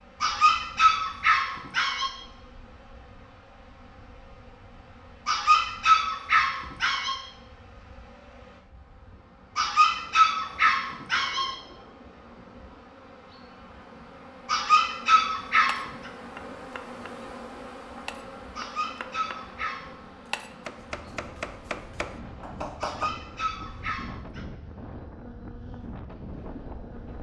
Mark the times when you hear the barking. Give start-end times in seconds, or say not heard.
0.2-2.1, 5.2-7.2, 9.6-11.6, 14.4-15.9, 18.6-19.9, 22.8-24.4.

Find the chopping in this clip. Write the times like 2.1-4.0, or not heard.
15.7-16.9, 18.1-19.4, 20.3-23.1.